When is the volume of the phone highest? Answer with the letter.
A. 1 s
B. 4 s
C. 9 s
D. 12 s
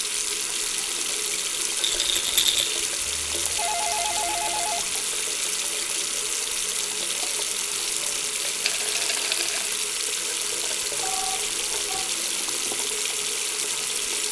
B.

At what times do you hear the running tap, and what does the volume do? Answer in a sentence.
You can hear the running tap from 0.0 to 14.2 s, at a steady volume.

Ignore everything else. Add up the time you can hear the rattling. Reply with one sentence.
You can hear the rattling for 2 seconds altogether.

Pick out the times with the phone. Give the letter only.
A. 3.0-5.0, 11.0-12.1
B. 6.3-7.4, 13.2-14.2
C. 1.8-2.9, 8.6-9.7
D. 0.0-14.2
A.